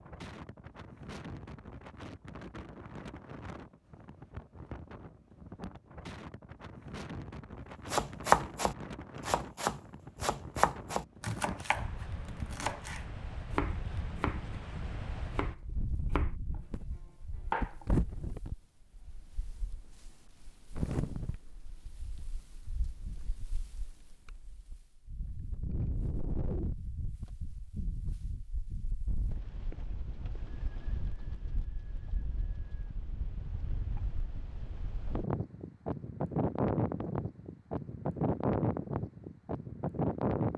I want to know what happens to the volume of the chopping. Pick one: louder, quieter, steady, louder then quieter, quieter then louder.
quieter.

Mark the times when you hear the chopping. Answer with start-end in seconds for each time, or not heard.
7.9-17.9.